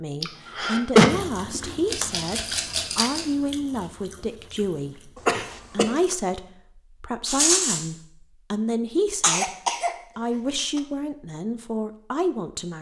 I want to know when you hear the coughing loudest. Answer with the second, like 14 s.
1 s.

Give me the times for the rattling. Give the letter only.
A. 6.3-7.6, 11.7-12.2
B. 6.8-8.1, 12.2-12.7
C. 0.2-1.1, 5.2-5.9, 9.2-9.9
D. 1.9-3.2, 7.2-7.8
D.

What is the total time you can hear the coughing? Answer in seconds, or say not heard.
2 s.